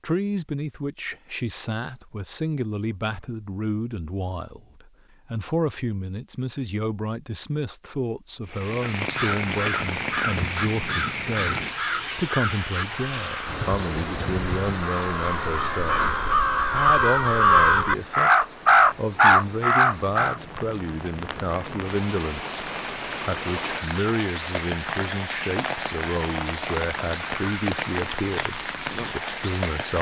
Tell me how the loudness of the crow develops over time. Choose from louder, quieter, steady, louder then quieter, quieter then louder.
louder.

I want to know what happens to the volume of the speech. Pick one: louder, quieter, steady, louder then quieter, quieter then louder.
steady.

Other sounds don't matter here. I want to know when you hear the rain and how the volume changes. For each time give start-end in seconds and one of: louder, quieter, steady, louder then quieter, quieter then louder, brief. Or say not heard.
8.4-29.9 quieter then louder.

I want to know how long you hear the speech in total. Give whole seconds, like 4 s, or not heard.
30 s.